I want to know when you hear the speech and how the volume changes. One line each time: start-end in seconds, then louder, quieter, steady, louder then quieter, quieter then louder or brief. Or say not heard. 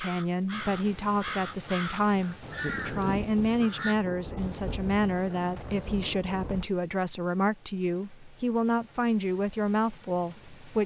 0.0-10.8 steady.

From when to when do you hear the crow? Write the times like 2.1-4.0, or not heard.
0.0-4.0.